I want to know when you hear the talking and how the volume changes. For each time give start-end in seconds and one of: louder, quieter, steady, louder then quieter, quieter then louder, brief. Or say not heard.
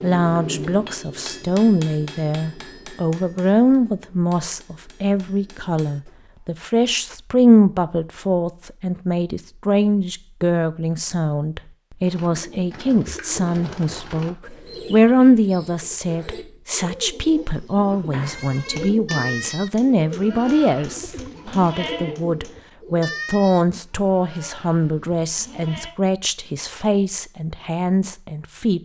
0.0-28.7 steady.